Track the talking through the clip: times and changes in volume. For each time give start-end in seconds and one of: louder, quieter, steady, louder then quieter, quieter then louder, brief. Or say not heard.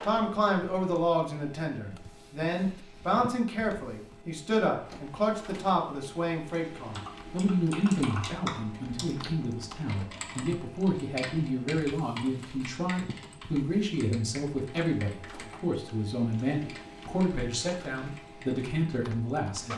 0.0-19.7 steady.